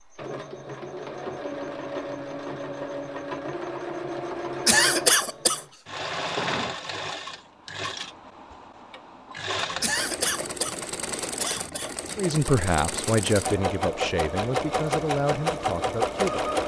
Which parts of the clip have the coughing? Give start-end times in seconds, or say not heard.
4.7-5.7, 9.8-11.9.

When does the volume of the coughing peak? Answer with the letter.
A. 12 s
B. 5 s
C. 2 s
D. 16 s
B.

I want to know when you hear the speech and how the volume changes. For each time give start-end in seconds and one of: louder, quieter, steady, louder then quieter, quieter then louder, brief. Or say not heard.
12.2-16.5 quieter.